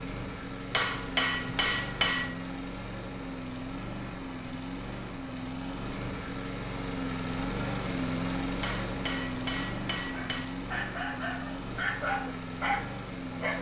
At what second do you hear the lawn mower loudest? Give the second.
8 s.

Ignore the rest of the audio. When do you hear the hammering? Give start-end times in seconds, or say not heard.
0.7-2.4, 8.6-10.5.